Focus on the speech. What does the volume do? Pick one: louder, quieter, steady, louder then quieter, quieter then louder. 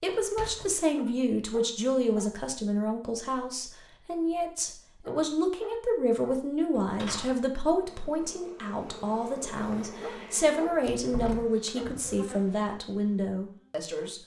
steady.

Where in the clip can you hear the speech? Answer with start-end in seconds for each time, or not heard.
0.0-14.2.